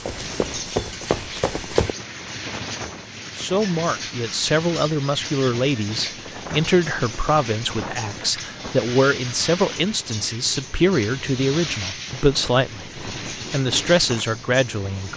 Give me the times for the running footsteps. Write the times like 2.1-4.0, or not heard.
0.0-1.9.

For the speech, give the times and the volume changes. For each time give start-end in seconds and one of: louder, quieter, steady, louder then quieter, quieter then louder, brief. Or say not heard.
3.4-15.1 steady.